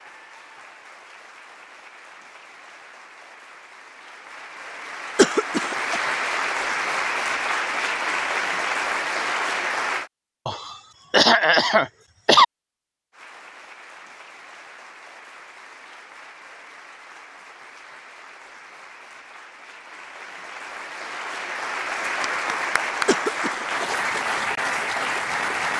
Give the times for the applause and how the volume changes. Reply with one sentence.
The applause can be heard from 0.0 to 10.1 s, getting louder; and from 13.1 to 25.7 s, getting louder.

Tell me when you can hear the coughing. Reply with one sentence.
You can hear the coughing from 5.2 to 6.0 s, from 10.4 to 12.4 s and from 23.1 to 23.9 s.